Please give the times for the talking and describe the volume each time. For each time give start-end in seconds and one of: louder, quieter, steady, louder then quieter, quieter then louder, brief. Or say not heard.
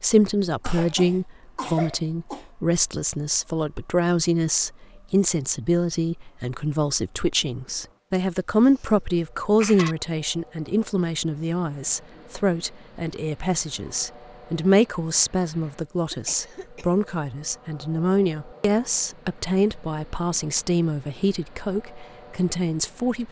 0.0-23.2 steady.